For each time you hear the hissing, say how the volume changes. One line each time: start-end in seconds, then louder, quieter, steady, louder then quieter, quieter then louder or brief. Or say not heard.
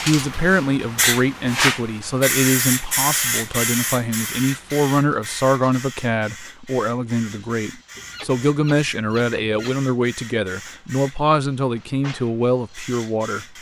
0.0-13.5 quieter.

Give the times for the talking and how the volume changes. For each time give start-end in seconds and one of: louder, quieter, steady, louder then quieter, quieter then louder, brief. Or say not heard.
0.0-13.4 steady.